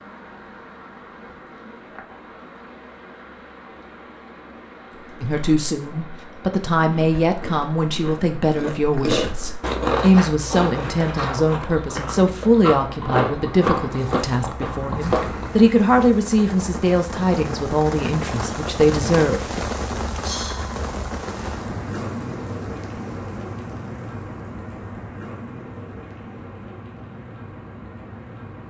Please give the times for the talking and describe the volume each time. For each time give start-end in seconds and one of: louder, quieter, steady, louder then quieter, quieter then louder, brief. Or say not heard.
5.2-19.5 steady.